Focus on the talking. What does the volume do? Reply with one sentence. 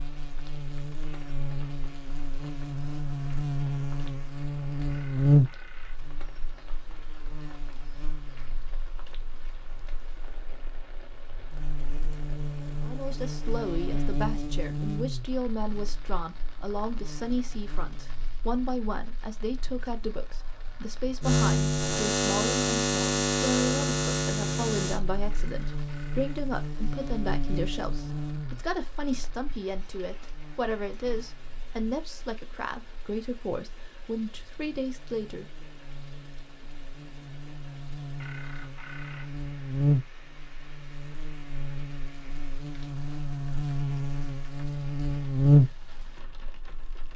The loudness of the talking stays about the same.